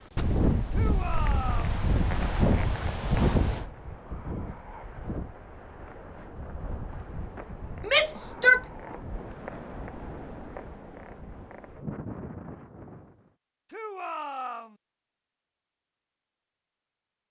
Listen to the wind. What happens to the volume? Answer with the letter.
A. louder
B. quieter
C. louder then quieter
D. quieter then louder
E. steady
B.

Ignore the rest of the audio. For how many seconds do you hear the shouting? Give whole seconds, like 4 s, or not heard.
3 s.